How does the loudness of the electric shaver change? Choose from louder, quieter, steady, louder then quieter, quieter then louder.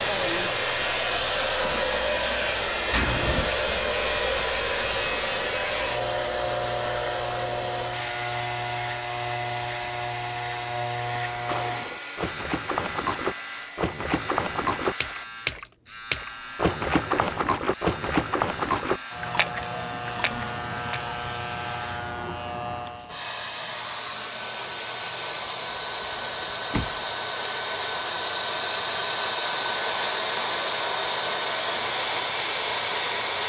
quieter.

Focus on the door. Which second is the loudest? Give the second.
3 s.